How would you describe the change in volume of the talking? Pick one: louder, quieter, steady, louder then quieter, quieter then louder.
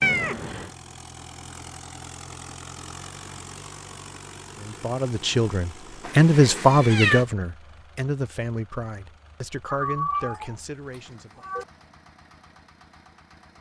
quieter.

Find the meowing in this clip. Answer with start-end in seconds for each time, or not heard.
0.0-0.7, 6.0-7.2, 9.7-11.7.